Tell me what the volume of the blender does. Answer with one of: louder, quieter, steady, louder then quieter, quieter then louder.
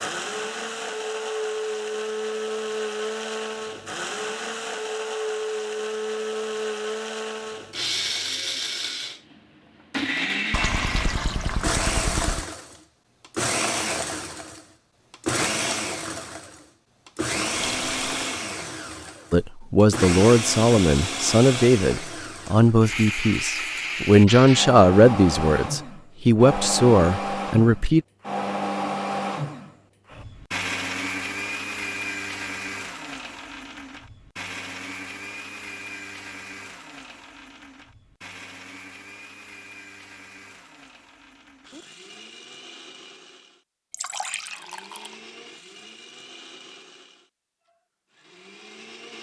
quieter.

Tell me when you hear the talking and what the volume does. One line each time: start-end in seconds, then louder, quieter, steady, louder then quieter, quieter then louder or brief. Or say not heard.
19.3-28.0 steady.